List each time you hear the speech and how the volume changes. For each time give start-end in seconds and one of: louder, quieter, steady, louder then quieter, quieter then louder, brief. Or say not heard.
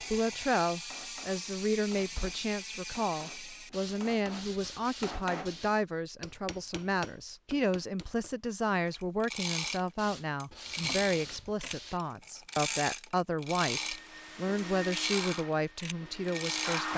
0.0-16.9 steady.